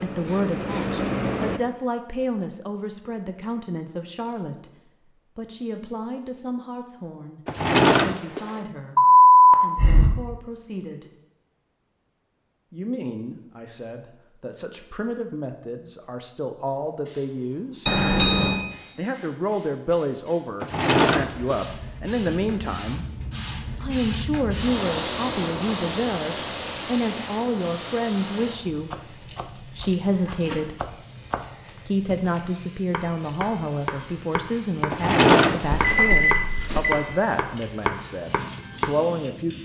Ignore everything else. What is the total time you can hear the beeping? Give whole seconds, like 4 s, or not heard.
3 s.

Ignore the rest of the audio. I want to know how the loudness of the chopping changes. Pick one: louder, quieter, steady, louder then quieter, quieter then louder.
louder.